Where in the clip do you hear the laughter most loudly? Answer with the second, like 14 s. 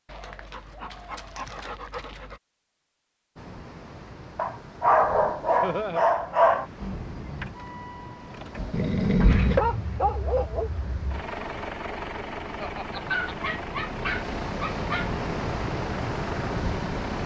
6 s.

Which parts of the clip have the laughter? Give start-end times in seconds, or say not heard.
5.6-6.0, 12.6-13.3.